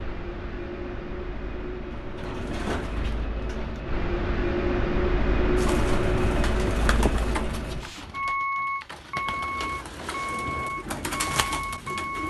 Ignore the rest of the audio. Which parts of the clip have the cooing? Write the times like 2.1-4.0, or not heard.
1.9-3.9, 5.5-12.2.